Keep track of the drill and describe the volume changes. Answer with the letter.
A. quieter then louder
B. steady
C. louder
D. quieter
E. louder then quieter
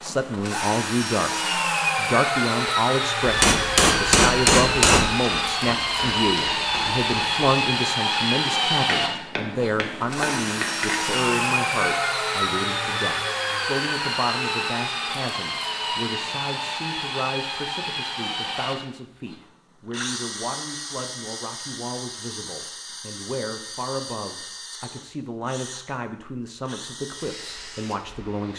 D.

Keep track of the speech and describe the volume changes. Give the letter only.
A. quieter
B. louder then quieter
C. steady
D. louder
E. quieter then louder
A.